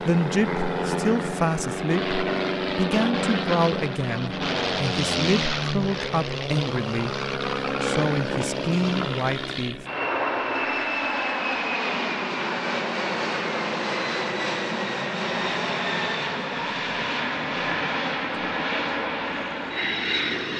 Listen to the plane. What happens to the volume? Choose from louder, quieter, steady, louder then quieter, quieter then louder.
steady.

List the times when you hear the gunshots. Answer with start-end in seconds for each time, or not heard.
not heard.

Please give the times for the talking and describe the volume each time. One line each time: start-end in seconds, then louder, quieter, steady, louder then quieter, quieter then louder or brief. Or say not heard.
0.1-9.8 steady.